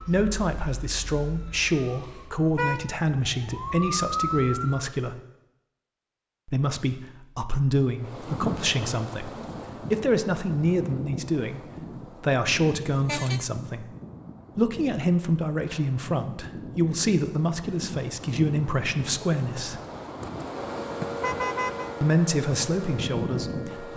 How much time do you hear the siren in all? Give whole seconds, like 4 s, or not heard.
8 s.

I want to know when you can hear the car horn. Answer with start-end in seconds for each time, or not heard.
1.8-2.9, 12.8-13.4, 21.2-21.9.